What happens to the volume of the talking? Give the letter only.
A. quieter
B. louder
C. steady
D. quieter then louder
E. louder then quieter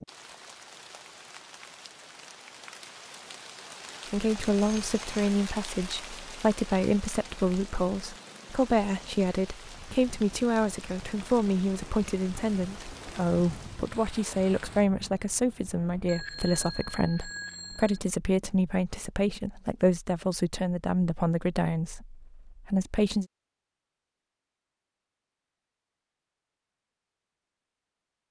C.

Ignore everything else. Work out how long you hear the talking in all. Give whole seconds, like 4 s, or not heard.
19 s.